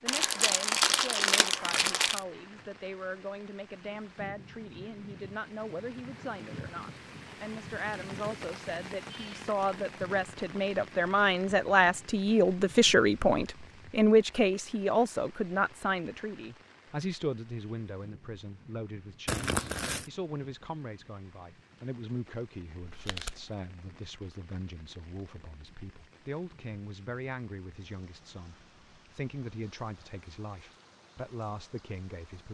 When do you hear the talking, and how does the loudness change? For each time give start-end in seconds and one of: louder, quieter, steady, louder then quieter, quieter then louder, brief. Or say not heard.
0.0-32.4 louder then quieter.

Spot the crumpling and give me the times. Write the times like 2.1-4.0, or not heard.
0.1-2.2, 19.2-20.1, 22.8-23.5.